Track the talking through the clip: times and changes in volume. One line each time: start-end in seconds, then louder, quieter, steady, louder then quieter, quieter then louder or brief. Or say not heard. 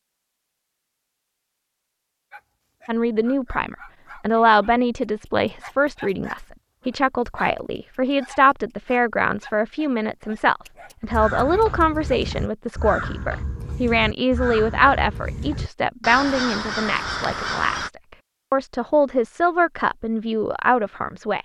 2.9-21.4 steady.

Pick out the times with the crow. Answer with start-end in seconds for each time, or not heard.
11.0-17.9.